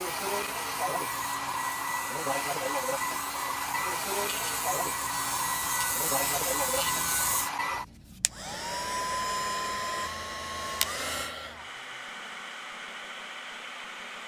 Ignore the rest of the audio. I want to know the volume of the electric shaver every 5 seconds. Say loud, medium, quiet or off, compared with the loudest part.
medium, loud, off.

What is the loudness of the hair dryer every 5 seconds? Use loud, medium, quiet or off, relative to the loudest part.
loud, loud, medium.